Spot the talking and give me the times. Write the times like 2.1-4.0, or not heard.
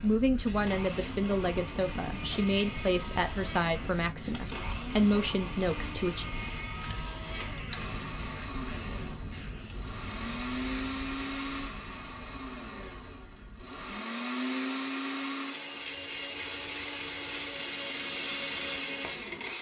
0.0-6.2.